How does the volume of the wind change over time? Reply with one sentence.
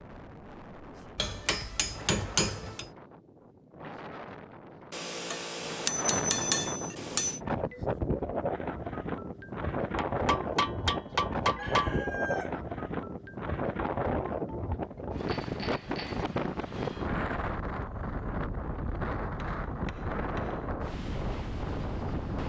The volume of the wind goes up.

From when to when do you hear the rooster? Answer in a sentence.
You can hear the rooster from 11.6 to 12.6 s.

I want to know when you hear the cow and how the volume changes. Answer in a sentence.
The cow can't be heard in this clip.